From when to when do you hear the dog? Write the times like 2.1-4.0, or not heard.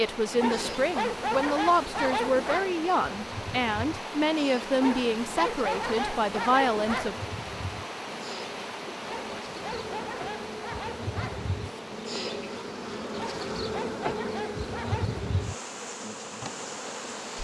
0.4-2.7, 4.8-7.2, 9.1-11.4, 13.2-15.2.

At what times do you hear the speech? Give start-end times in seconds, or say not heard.
0.0-7.2.